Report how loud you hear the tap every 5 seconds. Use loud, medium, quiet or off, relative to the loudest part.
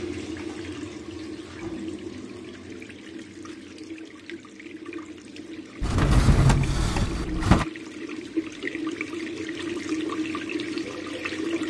medium, loud, loud.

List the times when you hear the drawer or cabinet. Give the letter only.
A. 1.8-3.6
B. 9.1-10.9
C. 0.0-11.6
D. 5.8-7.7
D.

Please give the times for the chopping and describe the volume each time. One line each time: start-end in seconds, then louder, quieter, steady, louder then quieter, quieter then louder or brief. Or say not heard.
not heard.